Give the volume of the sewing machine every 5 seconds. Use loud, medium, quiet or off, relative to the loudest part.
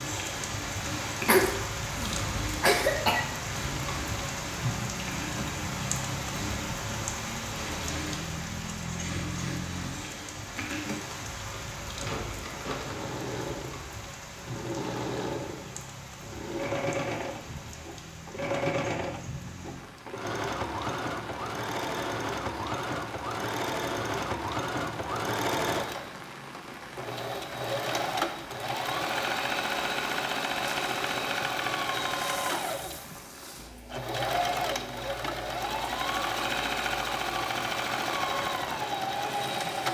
medium, medium, medium, loud, loud, loud, loud, loud.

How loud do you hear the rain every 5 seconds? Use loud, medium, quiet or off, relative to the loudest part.
loud, loud, medium, medium, medium, medium, medium, medium.